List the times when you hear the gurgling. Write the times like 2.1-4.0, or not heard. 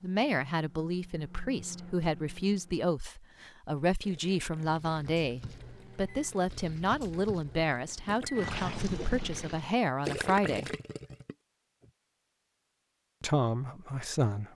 3.4-11.9.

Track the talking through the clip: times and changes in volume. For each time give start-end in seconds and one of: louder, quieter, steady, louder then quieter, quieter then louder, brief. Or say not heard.
0.0-10.7 steady
13.2-14.4 brief.